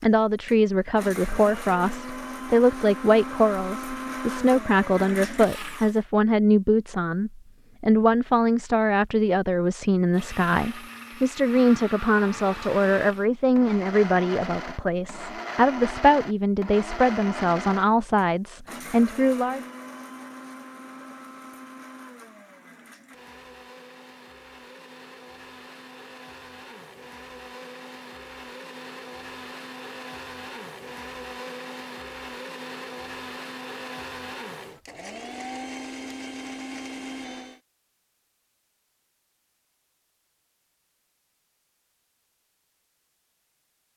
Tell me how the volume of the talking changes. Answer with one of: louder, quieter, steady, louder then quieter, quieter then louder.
steady.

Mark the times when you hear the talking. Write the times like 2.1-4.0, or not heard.
0.0-19.6.